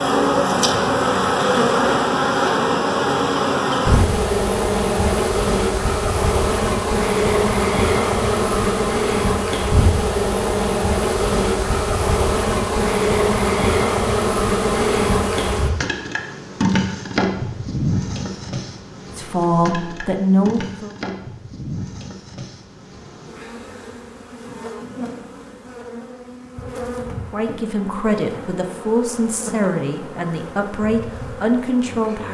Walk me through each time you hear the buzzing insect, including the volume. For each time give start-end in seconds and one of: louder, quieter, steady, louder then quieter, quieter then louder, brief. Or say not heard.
0.0-32.2 quieter.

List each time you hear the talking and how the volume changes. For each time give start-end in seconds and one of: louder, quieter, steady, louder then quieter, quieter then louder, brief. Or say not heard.
19.1-20.9 brief
27.3-32.2 steady.